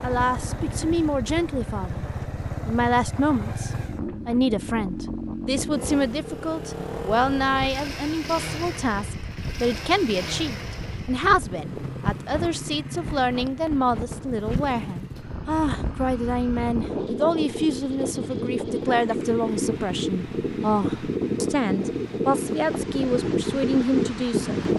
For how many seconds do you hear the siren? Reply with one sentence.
The siren can't be heard in this clip.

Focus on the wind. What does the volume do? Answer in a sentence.
The volume of the wind goes up.